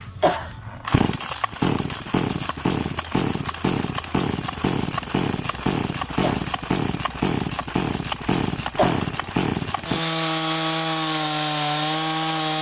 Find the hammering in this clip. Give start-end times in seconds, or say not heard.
not heard.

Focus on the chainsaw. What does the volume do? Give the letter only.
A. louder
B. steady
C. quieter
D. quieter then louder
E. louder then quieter
B.